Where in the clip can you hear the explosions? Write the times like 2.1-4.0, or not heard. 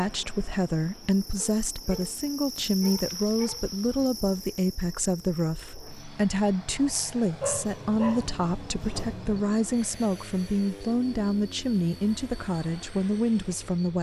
not heard.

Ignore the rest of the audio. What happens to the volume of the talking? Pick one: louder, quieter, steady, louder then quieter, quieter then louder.
steady.